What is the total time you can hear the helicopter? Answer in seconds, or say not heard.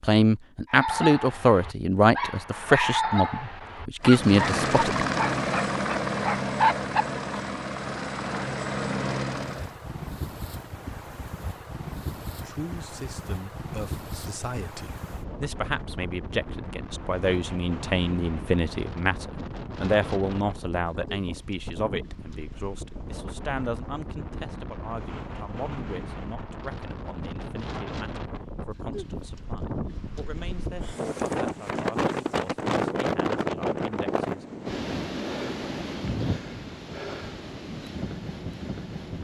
6 s.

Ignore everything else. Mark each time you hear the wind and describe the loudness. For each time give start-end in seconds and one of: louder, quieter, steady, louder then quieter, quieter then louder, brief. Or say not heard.
9.5-39.1 louder.